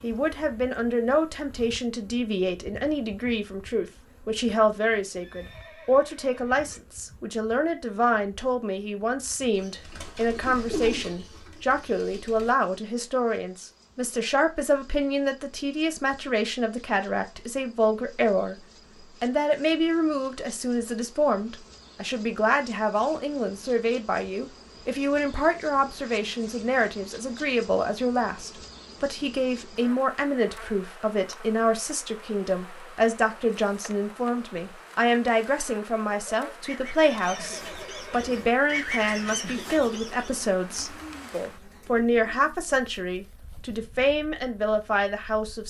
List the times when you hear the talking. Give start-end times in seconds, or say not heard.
0.0-18.6, 19.2-45.6.